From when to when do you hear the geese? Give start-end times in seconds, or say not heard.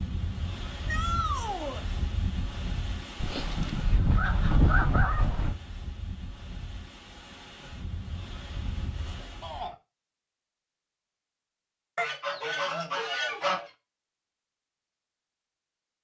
3.1-5.6, 11.9-13.7.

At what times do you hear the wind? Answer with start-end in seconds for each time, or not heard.
0.0-9.7.